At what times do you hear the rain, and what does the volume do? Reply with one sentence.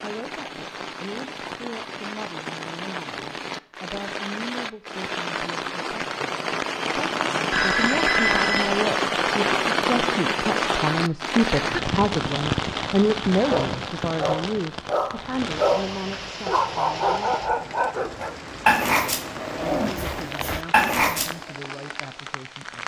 The rain can be heard from 0.0 to 22.8 s, getting louder then quieter.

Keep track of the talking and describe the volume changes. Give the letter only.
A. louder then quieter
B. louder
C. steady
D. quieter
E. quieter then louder
A.